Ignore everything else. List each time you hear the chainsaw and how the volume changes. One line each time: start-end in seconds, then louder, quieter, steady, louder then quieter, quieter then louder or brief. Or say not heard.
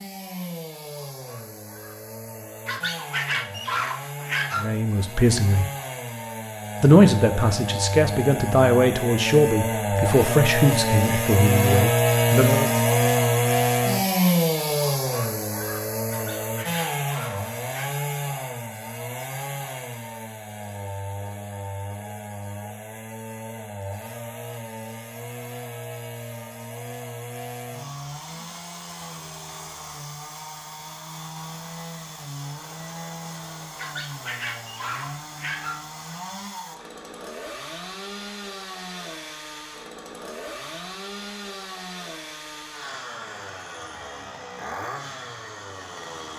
0.0-46.3 louder then quieter.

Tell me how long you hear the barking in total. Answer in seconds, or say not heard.
6 s.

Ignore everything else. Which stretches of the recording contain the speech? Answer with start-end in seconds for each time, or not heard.
4.5-5.7, 6.8-12.7.